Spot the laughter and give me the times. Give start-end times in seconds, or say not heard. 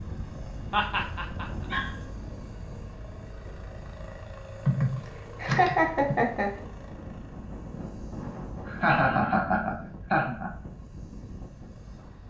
0.7-1.4, 4.7-6.5, 8.7-10.5.